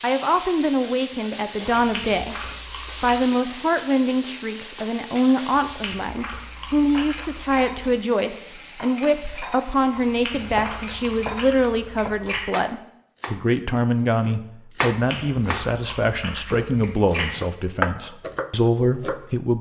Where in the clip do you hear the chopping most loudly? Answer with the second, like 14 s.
18 s.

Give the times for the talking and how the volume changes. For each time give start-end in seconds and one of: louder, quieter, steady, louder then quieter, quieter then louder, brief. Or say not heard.
0.0-2.4 brief
3.0-19.5 steady.